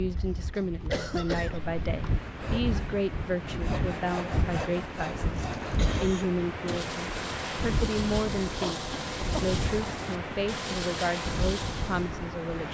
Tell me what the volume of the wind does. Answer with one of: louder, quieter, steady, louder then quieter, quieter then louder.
steady.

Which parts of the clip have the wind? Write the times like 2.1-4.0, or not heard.
0.0-12.6.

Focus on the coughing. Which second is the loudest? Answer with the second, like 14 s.
1 s.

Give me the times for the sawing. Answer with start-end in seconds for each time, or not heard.
2.2-12.1.